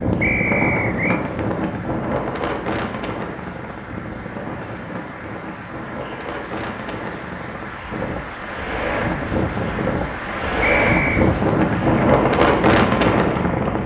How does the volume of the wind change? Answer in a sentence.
The volume of the wind goes down, then up.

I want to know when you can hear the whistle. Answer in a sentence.
You can hear the whistle from 0.2 to 1.2 s and from 10.6 to 11.3 s.